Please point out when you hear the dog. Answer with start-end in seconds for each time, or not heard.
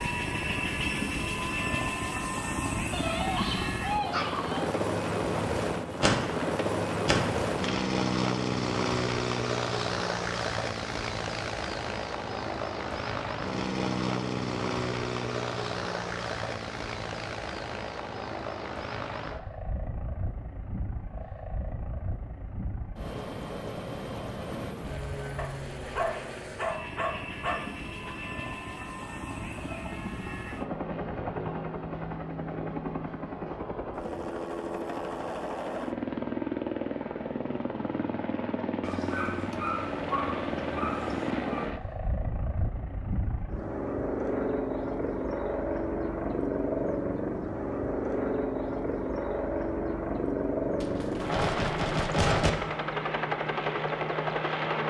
2.9-4.8, 25.4-28.1, 38.8-41.7.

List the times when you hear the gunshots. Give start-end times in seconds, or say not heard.
6.0-7.8, 50.8-52.5.